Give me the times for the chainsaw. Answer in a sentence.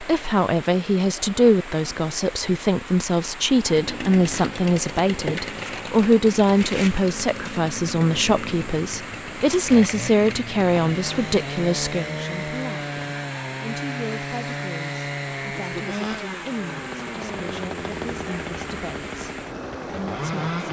The chainsaw can be heard from 3.5 to 20.6 s.